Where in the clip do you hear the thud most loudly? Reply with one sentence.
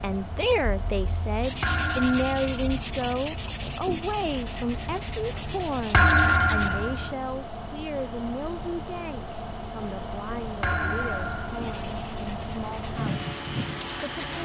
The volume of the thud peaks at 6 seconds.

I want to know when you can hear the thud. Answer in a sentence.
You can hear the thud from 1.6 to 2.6 s, from 5.9 to 7.2 s and from 10.6 to 11.6 s.